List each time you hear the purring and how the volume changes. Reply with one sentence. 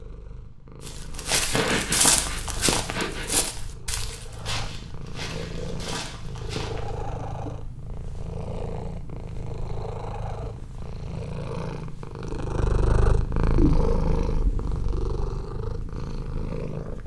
You can hear the purring from 0.0 to 17.0 s, getting louder.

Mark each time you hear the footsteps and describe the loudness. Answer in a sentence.
The footsteps can be heard from 0.8 to 6.9 s, getting quieter.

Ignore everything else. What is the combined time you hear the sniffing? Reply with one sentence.
You can hear the sniffing for 2 seconds altogether.